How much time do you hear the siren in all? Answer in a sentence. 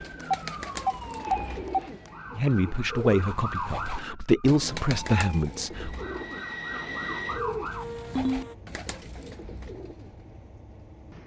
The siren can be heard for 8 seconds in total.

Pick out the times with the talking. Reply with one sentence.
The talking can be heard from 2.4 to 6.0 s.